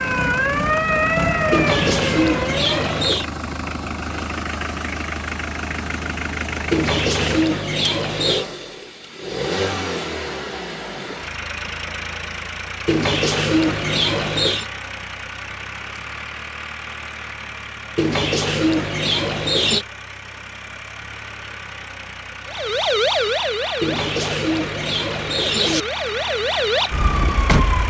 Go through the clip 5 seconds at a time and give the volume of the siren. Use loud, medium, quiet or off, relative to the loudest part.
loud, off, off, off, loud, loud.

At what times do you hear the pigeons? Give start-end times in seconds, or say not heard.
1.5-3.2, 6.7-8.4, 12.8-14.7, 17.9-19.9, 23.8-25.9.